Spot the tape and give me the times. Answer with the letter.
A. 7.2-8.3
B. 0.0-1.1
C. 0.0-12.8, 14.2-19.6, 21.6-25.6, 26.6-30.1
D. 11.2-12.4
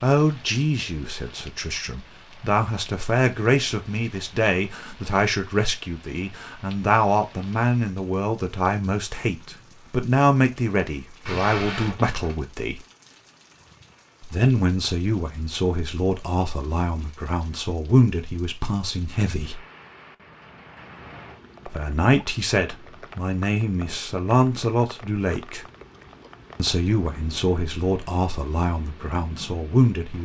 D.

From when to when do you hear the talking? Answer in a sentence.
You can hear the talking from 0.0 to 12.8 s, from 14.2 to 19.6 s, from 21.6 to 25.6 s and from 26.6 to 30.1 s.